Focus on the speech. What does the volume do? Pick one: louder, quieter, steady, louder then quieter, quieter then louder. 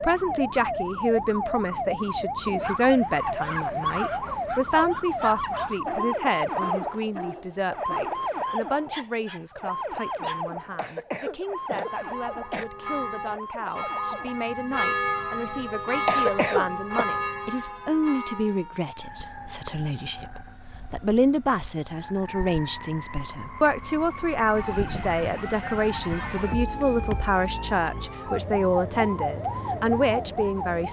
quieter then louder.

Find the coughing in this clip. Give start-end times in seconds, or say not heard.
10.8-12.7, 16.1-17.1.